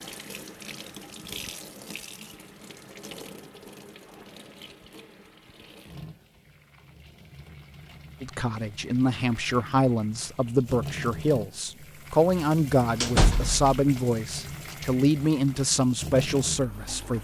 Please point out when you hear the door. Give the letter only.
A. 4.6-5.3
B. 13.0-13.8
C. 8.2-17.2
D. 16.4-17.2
B.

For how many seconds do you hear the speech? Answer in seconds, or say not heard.
9 s.